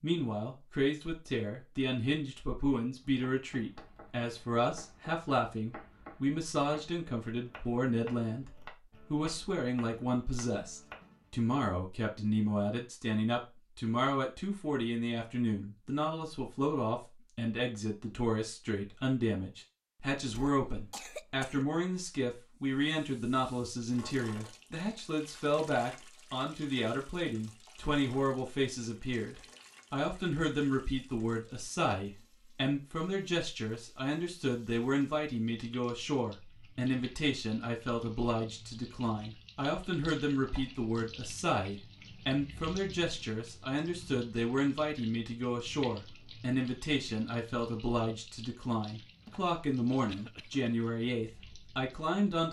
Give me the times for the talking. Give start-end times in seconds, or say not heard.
0.0-52.4.